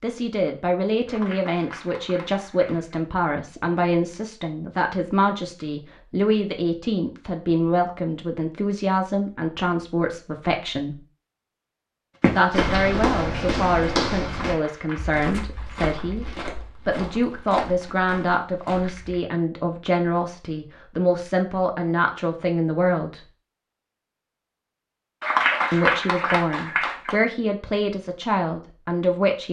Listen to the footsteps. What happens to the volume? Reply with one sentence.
The loudness of the footsteps goes down.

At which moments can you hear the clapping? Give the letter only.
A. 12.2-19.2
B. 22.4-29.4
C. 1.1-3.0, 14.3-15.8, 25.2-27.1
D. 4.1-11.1
C.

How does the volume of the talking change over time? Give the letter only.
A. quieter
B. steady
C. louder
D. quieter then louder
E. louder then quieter
B.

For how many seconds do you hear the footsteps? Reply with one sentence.
You can hear the footsteps for 7 seconds altogether.